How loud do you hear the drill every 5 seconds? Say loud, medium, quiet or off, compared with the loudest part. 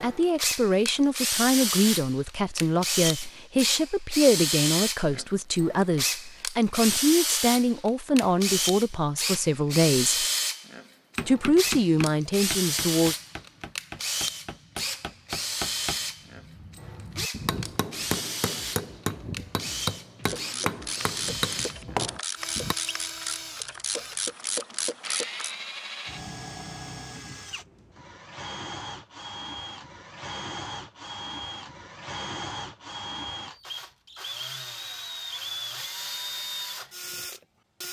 loud, loud, loud, medium, medium, medium, medium, medium.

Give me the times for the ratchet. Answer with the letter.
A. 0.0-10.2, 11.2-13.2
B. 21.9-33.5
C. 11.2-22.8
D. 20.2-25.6
D.